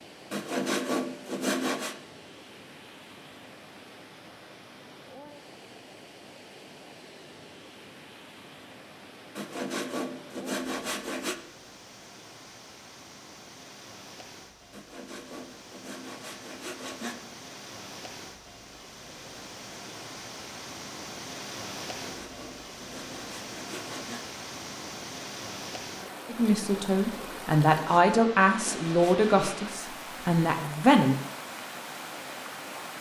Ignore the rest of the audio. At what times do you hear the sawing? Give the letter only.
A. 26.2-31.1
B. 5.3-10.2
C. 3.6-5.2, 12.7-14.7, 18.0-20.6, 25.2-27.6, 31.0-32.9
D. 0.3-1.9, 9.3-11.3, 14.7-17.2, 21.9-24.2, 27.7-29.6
D.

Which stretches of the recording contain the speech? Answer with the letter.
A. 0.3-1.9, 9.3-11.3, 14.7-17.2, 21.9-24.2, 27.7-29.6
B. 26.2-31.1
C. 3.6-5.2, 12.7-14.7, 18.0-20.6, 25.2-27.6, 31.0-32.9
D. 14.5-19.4
B.